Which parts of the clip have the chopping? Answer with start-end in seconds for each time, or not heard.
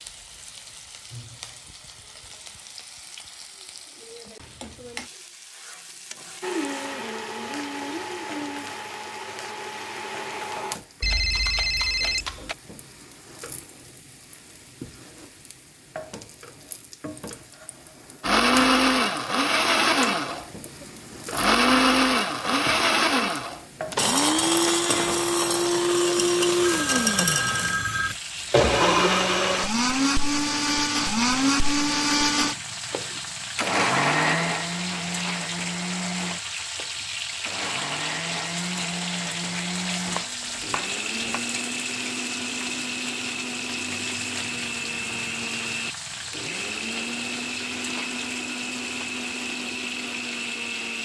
40.0-41.4.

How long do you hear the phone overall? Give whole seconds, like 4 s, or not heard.
3 s.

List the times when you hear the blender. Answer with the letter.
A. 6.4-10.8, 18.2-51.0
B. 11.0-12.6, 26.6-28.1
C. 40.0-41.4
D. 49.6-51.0
A.